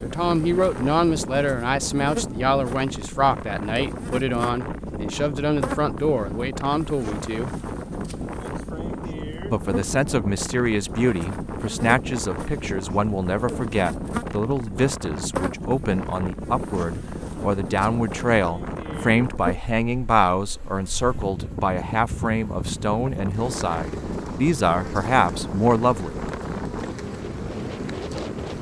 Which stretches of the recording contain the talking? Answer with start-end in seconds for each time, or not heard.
0.0-7.5, 9.5-26.3.